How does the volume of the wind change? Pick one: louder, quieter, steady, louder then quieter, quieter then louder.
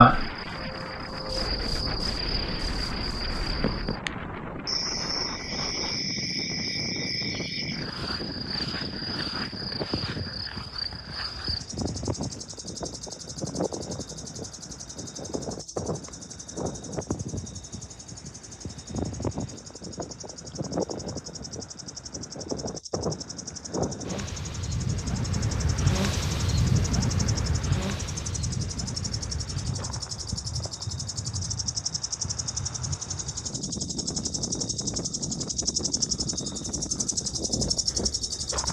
louder then quieter.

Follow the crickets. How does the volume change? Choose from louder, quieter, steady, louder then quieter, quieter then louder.
quieter then louder.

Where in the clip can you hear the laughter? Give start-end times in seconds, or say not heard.
not heard.